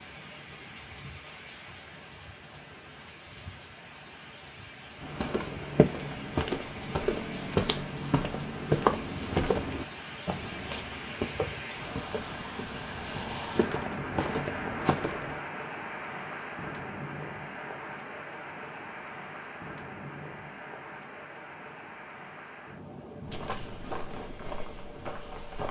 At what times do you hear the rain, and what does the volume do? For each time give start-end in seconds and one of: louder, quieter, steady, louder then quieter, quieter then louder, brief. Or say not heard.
0.0-25.6 louder then quieter.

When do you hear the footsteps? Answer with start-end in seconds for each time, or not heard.
5.0-15.4, 23.2-25.6.